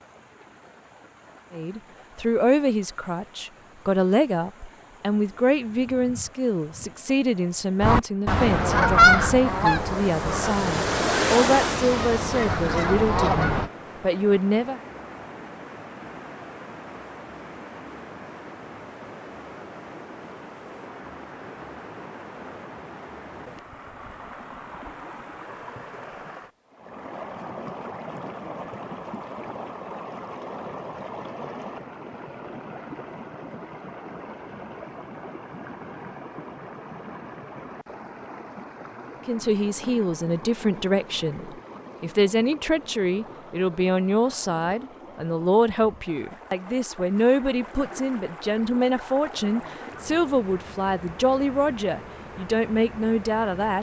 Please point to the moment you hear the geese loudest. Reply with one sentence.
The volume of the geese peaks at 9 seconds.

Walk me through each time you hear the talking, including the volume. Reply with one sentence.
You can hear the talking from 1.5 to 14.8 s, at a steady volume; and from 39.2 to 53.7 s, at a steady volume.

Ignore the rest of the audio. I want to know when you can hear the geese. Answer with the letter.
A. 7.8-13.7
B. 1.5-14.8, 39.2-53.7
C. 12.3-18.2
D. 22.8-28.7
A.